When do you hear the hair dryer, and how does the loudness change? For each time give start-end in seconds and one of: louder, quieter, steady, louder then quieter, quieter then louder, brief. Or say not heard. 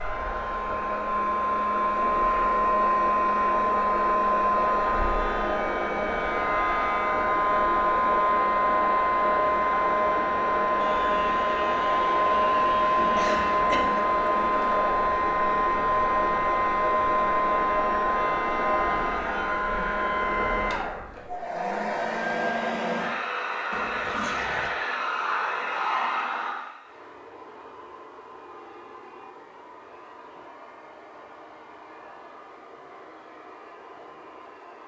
0.0-34.8 quieter.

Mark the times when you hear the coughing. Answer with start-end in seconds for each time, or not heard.
13.2-14.1.